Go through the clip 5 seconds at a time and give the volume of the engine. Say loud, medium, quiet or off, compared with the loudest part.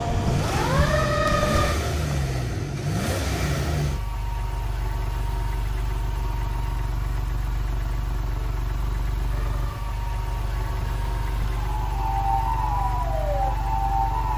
loud, medium, medium.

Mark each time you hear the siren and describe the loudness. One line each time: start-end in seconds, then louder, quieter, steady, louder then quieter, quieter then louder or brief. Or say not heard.
0.0-1.8 brief
9.2-14.3 louder.